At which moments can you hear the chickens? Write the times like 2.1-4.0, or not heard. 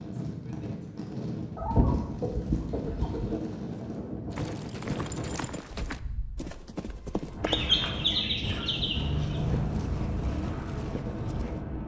1.6-3.4, 7.4-9.4.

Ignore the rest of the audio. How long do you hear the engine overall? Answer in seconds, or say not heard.
3 s.